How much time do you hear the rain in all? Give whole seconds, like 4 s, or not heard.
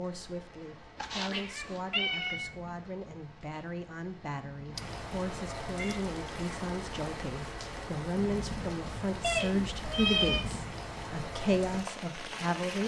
13 s.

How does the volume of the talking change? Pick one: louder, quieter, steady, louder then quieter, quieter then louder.
louder.